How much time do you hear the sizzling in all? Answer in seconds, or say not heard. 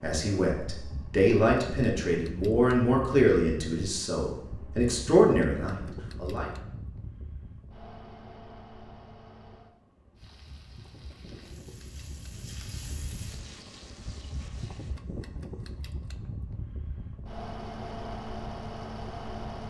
5 s.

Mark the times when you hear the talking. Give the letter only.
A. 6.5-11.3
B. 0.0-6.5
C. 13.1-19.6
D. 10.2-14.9
B.